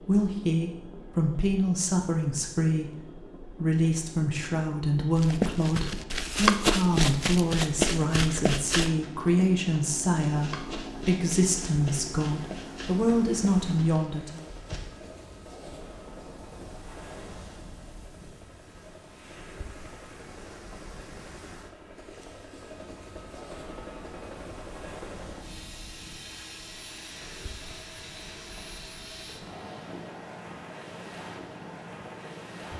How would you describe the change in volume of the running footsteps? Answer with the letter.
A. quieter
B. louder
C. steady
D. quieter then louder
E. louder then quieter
A.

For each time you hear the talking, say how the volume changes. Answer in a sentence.
You can hear the talking from 0.0 to 14.5 s, at a steady volume.